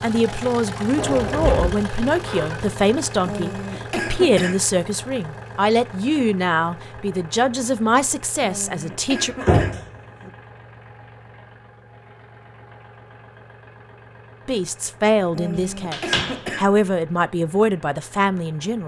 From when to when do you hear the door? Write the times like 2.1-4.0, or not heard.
0.9-2.8, 9.4-10.3, 15.6-16.4.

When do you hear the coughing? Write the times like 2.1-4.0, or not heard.
3.2-4.7, 8.4-9.8, 15.3-16.8.